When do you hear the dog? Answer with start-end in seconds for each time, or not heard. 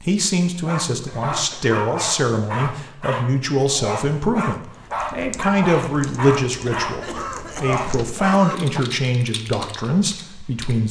0.7-8.8.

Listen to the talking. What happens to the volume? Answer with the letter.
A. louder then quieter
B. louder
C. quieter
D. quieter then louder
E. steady
E.